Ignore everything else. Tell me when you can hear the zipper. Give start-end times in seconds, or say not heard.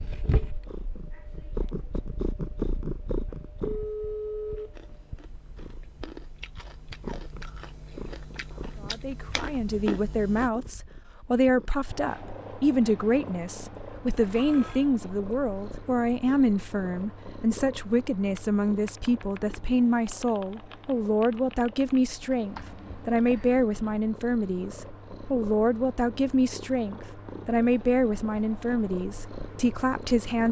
not heard.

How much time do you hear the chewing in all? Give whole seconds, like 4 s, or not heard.
6 s.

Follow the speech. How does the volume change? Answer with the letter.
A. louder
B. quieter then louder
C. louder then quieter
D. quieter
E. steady
E.